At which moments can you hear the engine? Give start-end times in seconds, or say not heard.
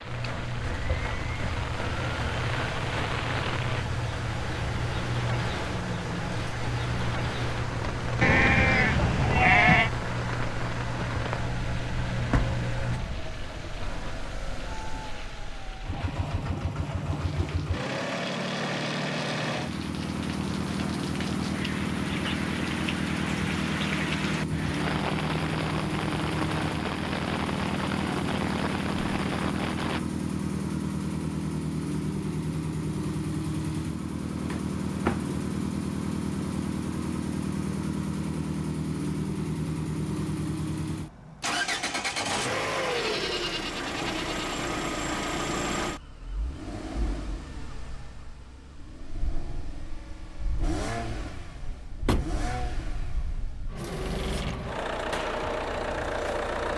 0.0-56.7.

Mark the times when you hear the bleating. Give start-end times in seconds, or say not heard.
8.2-9.9, 42.9-44.5.